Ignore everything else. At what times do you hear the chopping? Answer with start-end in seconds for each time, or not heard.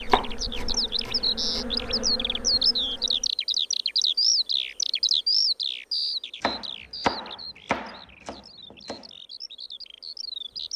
0.1-1.6, 6.4-9.1.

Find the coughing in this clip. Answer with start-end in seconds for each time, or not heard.
not heard.